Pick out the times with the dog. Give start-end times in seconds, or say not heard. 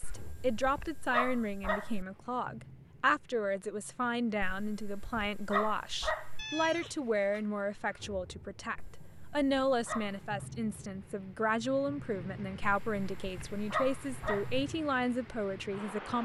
0.0-2.0, 4.4-6.5, 8.8-10.4, 12.6-14.7.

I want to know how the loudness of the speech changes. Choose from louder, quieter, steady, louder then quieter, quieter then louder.
steady.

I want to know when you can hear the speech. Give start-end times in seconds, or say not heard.
0.0-16.2.